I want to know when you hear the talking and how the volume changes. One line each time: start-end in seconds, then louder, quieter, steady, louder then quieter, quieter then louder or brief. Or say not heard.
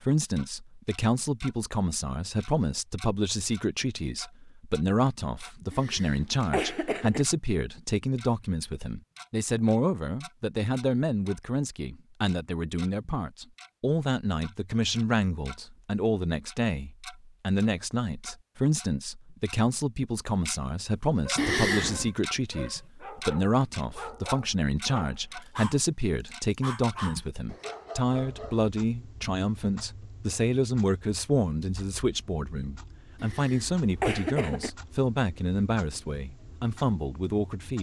0.0-37.7 steady.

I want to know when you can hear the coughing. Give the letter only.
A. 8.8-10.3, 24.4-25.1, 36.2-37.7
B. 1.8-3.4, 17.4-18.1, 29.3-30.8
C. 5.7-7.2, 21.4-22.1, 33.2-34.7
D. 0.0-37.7
C.